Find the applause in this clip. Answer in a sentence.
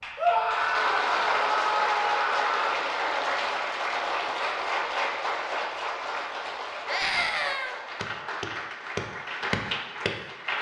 The applause can be heard from 0.0 to 10.5 s.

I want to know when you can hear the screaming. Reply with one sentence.
The screaming can be heard from 0.1 to 2.8 s and from 6.8 to 7.8 s.